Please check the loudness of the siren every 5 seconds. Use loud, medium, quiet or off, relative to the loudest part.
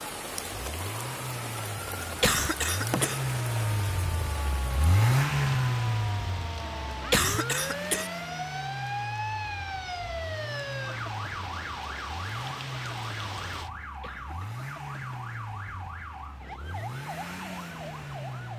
medium, loud, loud, medium.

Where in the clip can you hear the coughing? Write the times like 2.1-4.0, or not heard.
2.0-3.2, 6.9-8.1, 13.8-14.7.